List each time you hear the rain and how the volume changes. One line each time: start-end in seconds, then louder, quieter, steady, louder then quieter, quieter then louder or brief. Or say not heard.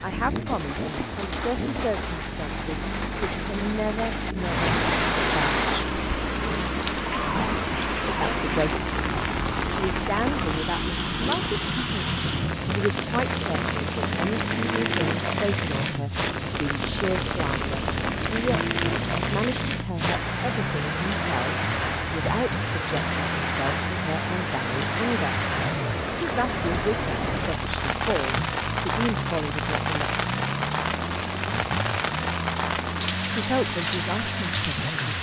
0.0-35.1 steady.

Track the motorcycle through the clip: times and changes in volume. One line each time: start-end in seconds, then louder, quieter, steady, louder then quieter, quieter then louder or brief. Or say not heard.
0.0-35.1 steady.